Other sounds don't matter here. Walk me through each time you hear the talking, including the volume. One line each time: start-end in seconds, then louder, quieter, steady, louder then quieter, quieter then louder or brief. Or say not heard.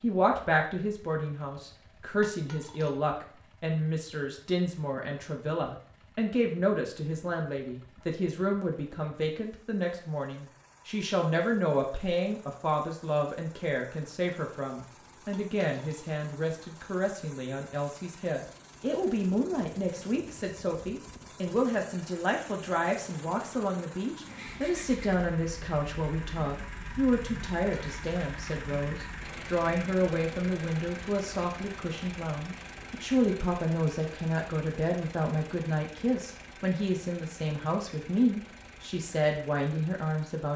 0.0-40.5 steady.